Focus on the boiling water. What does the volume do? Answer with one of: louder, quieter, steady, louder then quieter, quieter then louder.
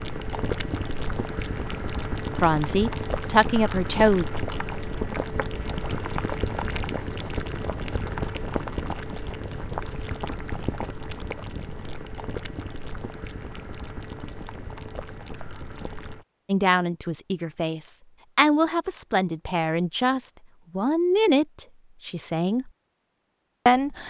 quieter.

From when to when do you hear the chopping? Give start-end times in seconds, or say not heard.
not heard.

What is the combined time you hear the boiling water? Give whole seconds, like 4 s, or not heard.
16 s.